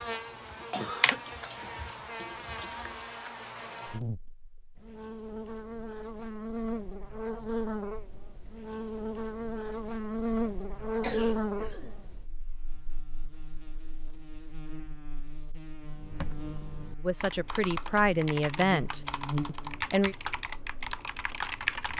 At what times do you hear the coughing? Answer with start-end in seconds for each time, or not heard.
0.7-1.8, 11.0-11.9.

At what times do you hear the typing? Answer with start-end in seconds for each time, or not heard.
0.0-3.1, 15.8-21.9.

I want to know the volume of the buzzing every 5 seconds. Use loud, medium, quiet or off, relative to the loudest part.
medium, loud, loud, medium, off.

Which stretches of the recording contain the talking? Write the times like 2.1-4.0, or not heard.
17.0-20.1.